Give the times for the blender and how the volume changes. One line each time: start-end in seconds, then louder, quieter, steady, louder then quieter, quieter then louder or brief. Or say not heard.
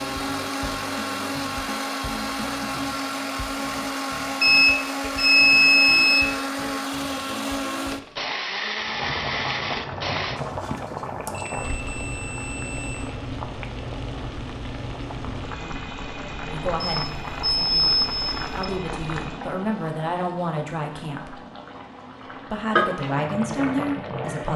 0.0-10.4 steady.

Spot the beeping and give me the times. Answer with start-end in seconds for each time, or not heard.
4.4-6.3, 10.3-13.1, 16.8-18.6.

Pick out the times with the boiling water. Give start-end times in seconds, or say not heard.
8.8-24.5.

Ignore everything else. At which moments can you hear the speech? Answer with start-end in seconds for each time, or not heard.
16.4-21.4, 22.3-24.5.